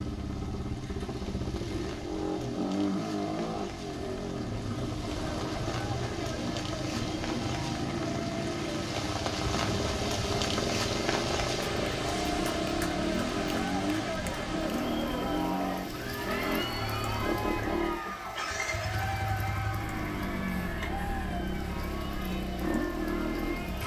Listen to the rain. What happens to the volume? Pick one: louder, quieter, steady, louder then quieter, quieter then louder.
louder then quieter.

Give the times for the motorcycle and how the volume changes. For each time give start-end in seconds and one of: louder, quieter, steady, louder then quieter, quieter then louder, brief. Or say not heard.
0.0-23.8 steady.